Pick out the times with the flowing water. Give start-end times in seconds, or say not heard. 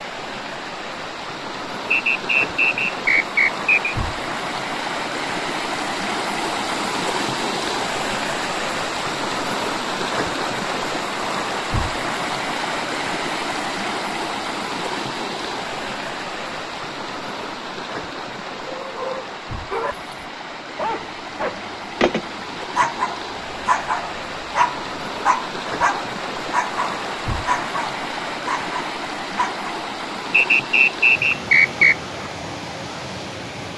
0.0-33.7.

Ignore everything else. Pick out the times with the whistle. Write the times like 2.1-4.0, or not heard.
1.9-3.7, 30.3-31.9.